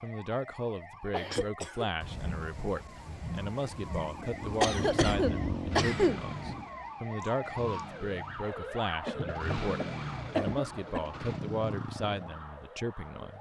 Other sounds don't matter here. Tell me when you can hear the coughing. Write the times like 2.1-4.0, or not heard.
1.1-1.9, 4.6-6.2, 9.1-11.1.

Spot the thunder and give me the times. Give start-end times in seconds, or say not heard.
2.0-6.8.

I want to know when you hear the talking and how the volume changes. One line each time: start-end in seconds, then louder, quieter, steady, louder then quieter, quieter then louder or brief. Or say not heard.
0.0-13.3 steady.